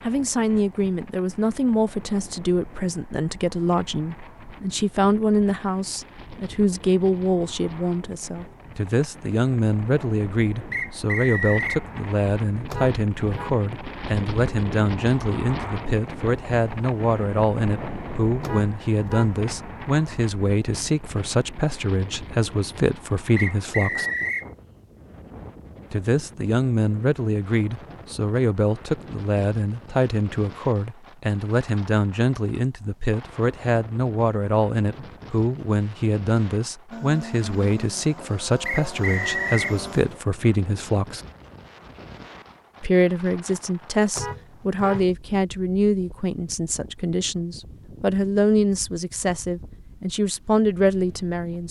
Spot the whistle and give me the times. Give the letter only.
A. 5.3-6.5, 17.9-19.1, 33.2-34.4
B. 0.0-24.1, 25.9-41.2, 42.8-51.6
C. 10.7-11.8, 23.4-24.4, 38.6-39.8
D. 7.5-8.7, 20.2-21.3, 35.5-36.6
C.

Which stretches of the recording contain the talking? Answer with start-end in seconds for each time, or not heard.
0.0-24.1, 25.9-41.2, 42.8-51.6.